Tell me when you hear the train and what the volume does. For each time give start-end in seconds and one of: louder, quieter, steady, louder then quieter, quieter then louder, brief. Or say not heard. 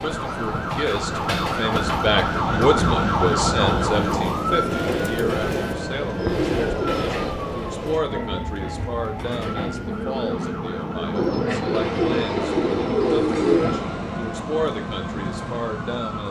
0.0-16.2 steady.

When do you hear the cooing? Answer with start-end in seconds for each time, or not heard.
4.1-7.3, 11.1-13.8.